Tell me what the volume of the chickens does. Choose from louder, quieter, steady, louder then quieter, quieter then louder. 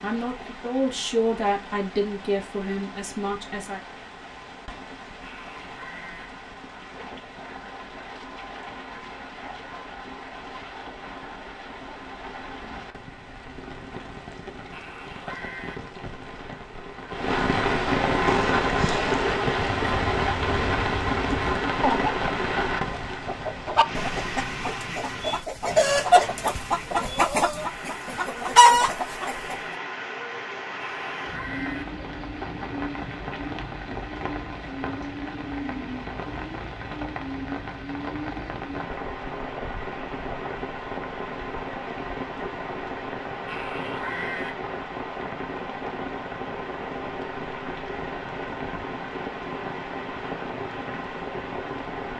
louder.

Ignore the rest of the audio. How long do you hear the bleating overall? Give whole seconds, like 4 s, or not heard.
4 s.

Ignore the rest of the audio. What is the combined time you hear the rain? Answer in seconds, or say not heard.
52 s.